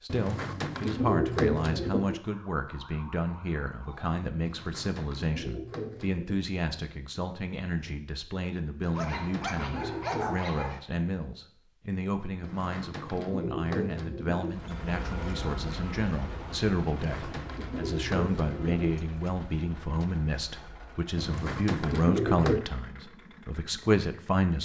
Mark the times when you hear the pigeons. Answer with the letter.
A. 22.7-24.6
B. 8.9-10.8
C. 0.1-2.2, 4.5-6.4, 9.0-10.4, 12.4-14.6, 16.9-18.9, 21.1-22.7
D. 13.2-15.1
C.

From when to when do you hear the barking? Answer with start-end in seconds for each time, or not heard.
8.9-10.8.